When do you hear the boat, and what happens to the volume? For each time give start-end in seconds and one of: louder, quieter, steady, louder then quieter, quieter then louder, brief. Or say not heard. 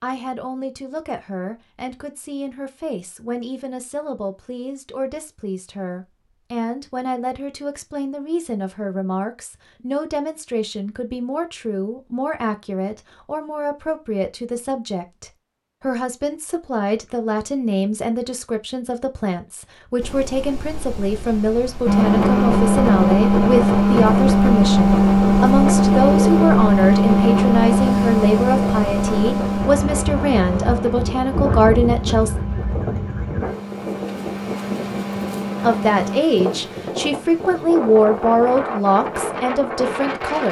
21.9-36.2 quieter.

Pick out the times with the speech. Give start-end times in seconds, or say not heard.
0.0-32.4, 35.5-40.4.